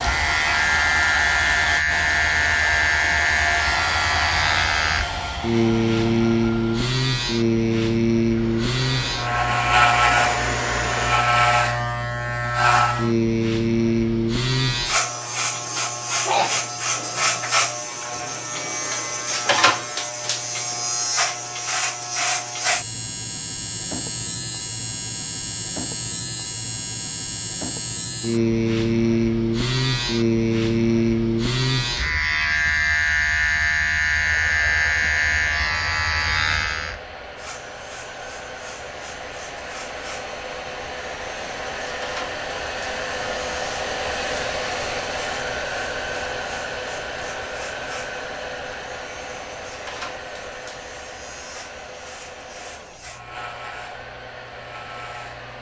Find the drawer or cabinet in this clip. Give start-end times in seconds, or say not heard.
not heard.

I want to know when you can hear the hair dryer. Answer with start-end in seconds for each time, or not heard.
0.0-11.3, 34.0-55.5.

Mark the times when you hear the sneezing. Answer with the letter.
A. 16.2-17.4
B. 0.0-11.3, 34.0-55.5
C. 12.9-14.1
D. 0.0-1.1
A.